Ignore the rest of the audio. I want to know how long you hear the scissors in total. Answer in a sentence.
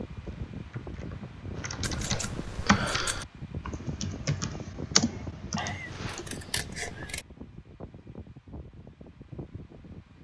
The scissors can be heard for 3 seconds in total.